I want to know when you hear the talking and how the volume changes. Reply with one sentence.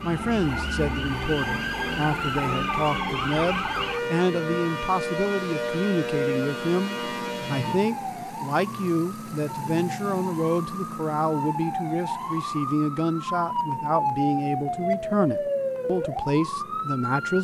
The talking can be heard from 0.0 to 17.3 s, at a steady volume.